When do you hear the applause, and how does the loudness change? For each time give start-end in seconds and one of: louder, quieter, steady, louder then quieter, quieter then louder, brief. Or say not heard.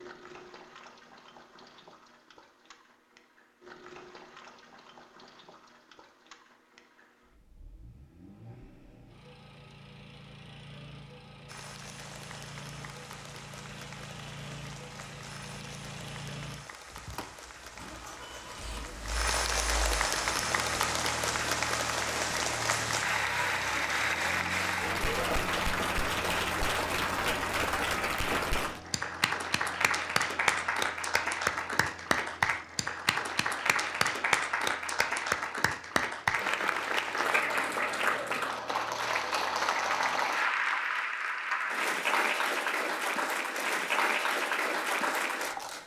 11.4-45.8 louder.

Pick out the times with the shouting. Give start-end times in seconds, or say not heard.
not heard.